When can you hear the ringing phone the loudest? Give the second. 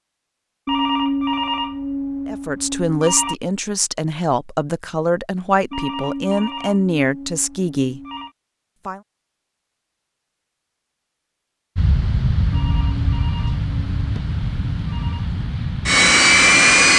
1 s.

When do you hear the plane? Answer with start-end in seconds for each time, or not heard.
11.8-16.9.